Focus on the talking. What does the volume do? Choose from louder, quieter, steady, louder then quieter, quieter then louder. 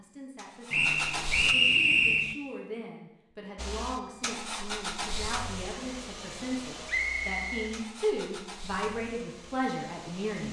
louder.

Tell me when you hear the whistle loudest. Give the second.
2 s.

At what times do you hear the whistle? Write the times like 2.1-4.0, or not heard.
0.7-2.4, 6.8-7.7.